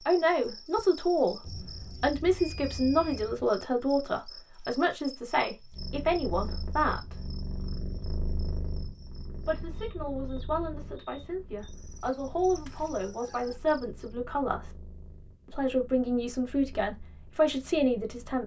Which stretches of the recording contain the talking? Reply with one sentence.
The talking can be heard from 0.1 to 7.3 s, from 9.4 to 14.7 s and from 15.4 to 18.4 s.